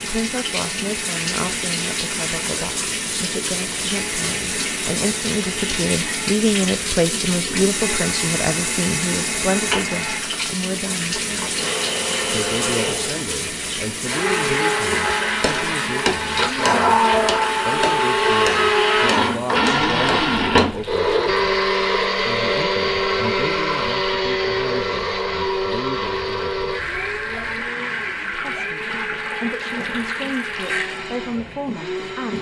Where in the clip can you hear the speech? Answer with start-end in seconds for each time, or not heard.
0.0-11.6, 12.2-16.9, 17.6-21.6, 22.1-26.8, 28.3-32.3.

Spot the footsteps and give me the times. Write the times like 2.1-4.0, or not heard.
not heard.